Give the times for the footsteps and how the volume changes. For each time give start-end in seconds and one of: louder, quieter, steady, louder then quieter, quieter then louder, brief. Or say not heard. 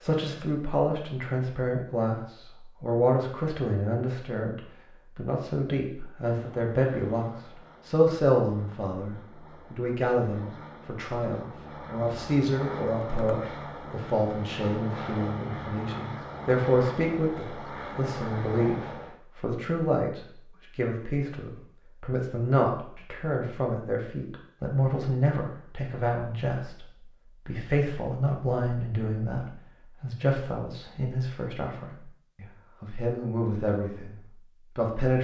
not heard.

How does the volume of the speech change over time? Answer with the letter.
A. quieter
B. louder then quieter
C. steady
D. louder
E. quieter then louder
C.